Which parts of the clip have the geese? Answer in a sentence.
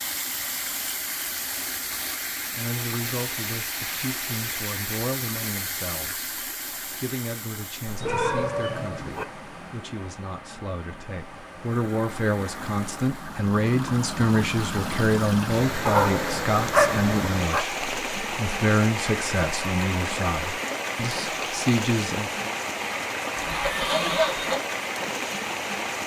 You can hear the geese from 23.4 to 24.6 s.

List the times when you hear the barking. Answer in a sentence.
The barking can be heard from 8.0 to 9.2 s and from 15.8 to 17.6 s.